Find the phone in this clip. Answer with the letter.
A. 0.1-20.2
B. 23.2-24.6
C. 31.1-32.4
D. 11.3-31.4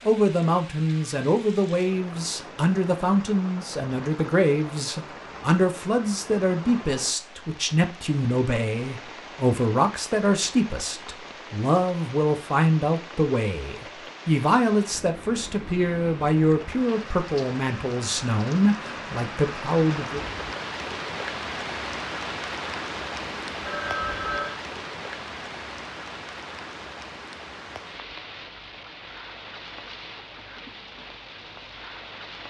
B.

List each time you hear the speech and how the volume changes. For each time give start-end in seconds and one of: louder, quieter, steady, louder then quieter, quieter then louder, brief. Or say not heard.
0.1-20.2 steady.